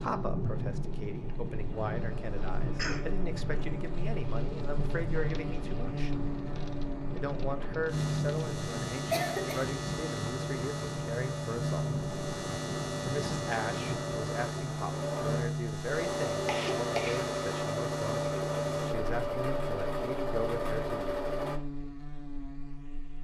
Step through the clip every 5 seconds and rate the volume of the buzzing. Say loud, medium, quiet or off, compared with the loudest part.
medium, loud, loud, loud, medium.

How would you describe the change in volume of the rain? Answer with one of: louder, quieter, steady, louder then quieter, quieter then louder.
steady.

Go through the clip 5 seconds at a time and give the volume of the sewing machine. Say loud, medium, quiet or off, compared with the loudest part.
quiet, quiet, medium, loud, loud.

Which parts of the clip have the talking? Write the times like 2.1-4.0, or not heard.
0.0-6.1, 7.2-11.9, 13.1-21.2.